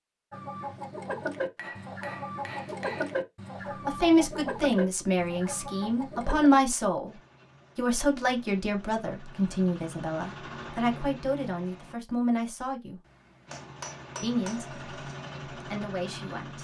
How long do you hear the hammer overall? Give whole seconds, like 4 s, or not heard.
3 s.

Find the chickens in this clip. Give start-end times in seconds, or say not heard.
0.3-6.5.